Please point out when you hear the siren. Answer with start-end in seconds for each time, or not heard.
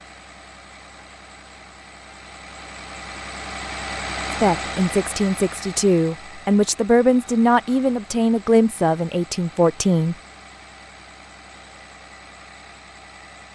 not heard.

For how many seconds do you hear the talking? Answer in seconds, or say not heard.
6 s.